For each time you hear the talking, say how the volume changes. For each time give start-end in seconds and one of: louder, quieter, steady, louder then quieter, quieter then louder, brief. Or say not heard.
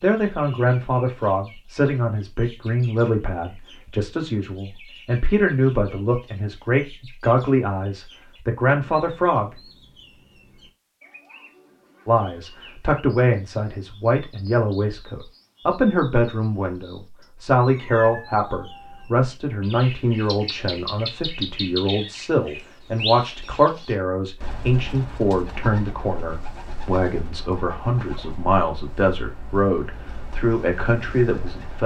0.0-9.5 steady
12.1-31.8 steady.